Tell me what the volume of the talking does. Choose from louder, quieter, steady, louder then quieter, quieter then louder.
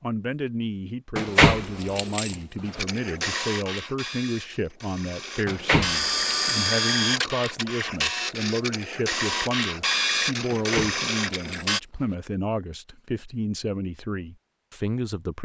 steady.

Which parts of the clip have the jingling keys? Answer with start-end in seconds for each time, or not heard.
1.1-2.8, 5.5-6.7, 10.5-12.2.